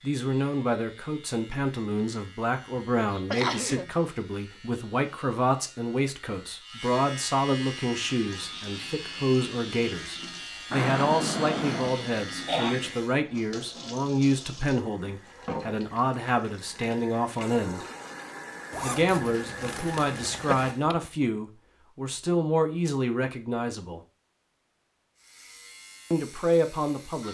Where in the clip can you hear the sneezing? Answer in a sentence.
The sneezing can be heard from 3.1 to 3.9 s, from 10.7 to 12.9 s and from 20.4 to 21.1 s.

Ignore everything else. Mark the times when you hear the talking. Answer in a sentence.
You can hear the talking from 0.0 to 17.9 s, from 18.8 to 24.0 s and from 26.1 to 27.2 s.